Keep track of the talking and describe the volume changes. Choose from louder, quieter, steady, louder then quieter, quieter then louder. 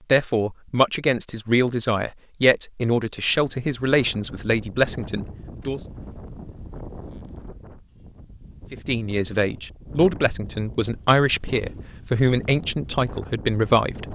steady.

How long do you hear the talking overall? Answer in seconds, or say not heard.
11 s.